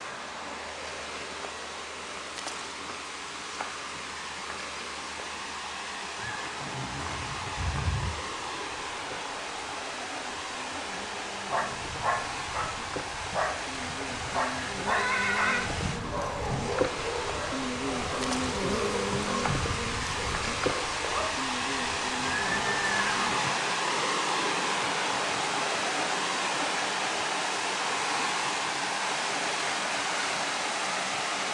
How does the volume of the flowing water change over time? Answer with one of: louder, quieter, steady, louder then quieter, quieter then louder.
louder.